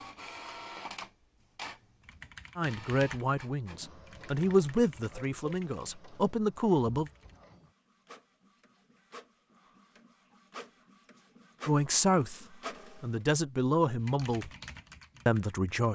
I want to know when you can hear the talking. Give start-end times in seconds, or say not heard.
2.5-7.1, 11.7-14.5, 15.2-15.9.